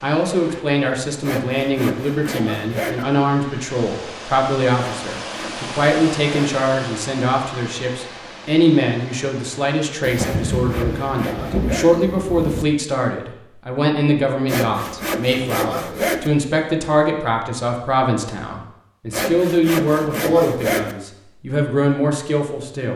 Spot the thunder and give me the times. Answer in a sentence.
The thunder can be heard from 10.0 to 12.7 s.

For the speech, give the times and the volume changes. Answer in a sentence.
You can hear the speech from 0.0 to 22.9 s, at a steady volume.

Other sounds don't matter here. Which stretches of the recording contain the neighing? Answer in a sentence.
The neighing can't be heard in this clip.